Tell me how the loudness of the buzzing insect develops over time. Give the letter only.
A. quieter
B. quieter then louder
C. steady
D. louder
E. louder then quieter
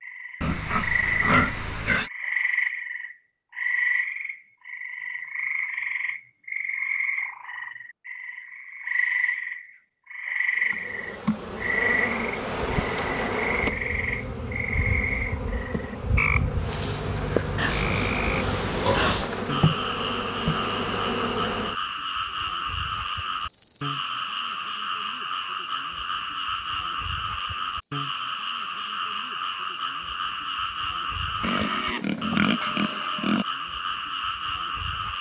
A.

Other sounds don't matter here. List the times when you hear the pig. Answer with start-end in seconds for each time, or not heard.
0.4-2.1, 17.6-19.3, 31.4-33.5.